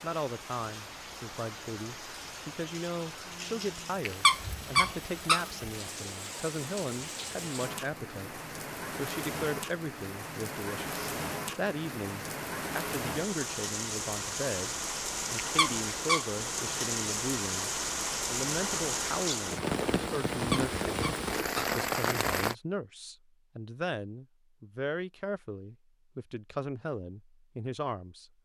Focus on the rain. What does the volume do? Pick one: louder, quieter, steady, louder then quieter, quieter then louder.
louder.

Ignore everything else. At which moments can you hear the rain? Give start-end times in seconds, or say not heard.
0.0-22.6.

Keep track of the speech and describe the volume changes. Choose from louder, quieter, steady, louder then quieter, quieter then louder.
steady.